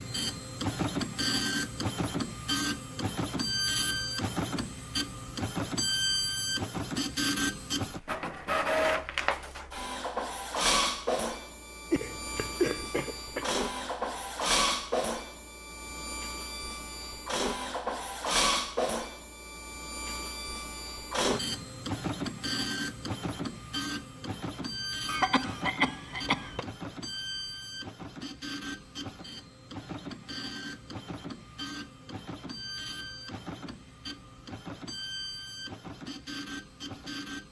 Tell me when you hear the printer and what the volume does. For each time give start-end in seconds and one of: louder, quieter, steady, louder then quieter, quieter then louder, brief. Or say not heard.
0.0-37.4 quieter.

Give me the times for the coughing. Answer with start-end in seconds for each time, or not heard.
11.9-13.5, 25.1-26.6.